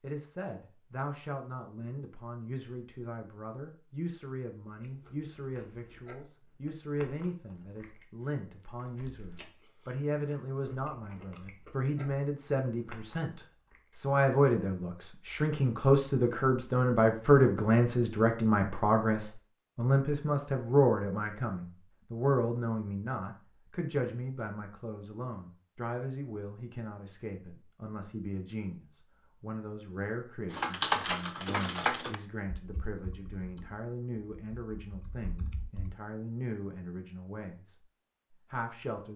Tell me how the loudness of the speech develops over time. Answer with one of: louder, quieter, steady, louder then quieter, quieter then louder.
louder then quieter.